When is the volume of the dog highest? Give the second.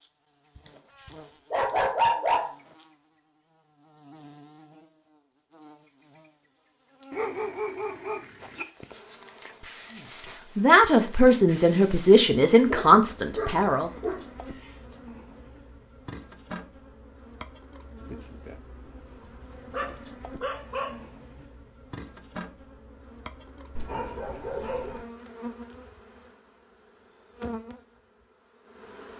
2 s.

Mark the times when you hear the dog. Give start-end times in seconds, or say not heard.
0.6-2.5, 7.1-8.7, 12.2-14.2, 19.7-21.4, 23.8-25.1.